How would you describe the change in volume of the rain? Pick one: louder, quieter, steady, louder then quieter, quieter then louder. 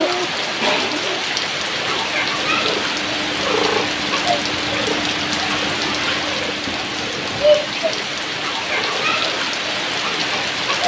steady.